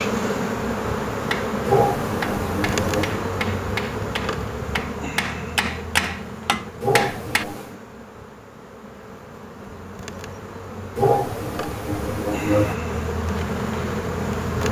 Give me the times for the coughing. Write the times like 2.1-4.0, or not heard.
1.6-3.2, 6.8-7.8, 10.9-12.8.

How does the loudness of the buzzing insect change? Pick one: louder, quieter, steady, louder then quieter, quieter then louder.
quieter then louder.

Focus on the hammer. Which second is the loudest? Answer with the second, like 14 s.
6 s.